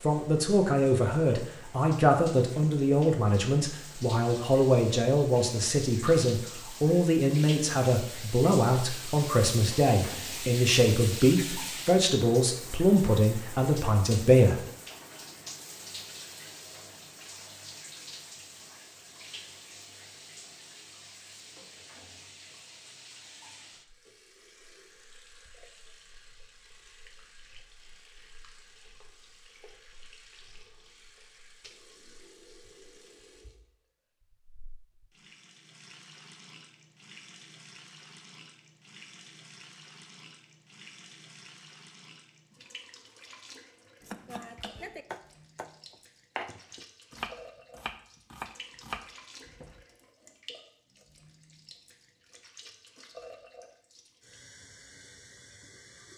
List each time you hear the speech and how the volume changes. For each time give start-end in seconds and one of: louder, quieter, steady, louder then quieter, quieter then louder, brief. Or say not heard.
0.0-14.7 steady.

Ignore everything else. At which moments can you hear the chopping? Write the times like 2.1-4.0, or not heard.
44.0-49.9.